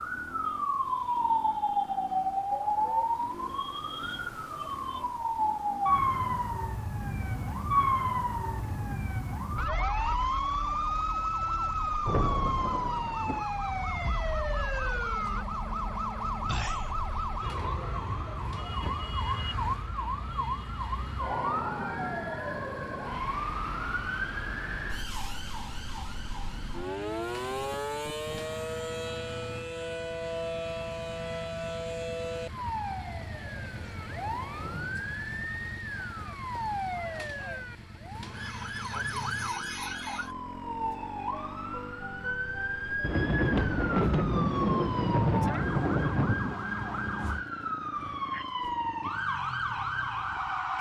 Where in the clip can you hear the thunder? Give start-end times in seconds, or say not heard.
12.1-13.4, 43.0-46.6.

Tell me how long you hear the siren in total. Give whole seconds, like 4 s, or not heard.
51 s.